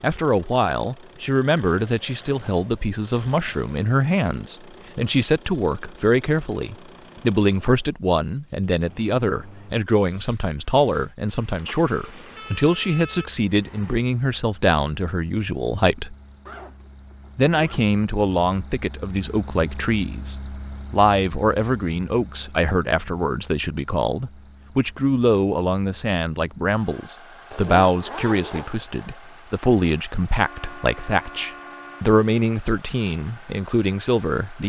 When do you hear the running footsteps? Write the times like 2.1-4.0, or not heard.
not heard.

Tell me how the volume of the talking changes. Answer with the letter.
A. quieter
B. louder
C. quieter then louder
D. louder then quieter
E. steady
E.